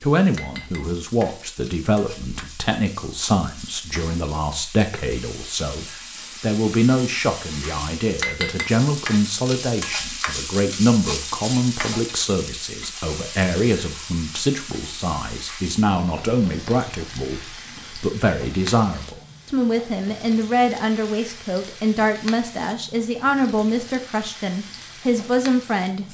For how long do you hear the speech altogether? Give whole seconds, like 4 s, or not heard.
26 s.